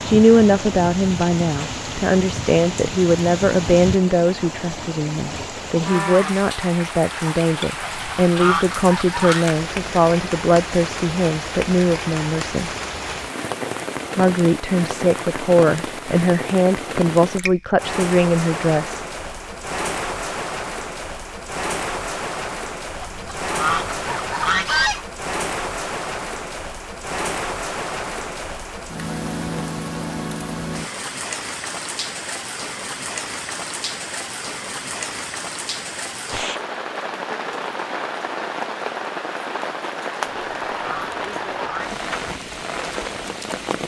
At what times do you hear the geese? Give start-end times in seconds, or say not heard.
7.8-9.4, 23.0-25.1, 40.2-42.0.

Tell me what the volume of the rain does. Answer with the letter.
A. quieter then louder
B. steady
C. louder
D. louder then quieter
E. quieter
B.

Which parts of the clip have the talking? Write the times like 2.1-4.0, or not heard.
0.0-12.7, 14.2-19.0.